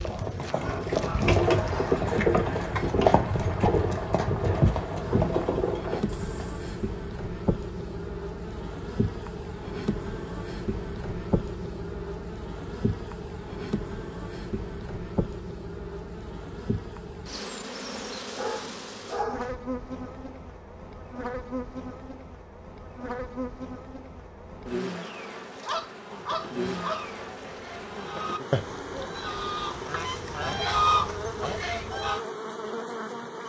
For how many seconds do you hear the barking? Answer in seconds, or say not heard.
5 s.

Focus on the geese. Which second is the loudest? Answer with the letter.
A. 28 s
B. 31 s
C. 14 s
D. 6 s
B.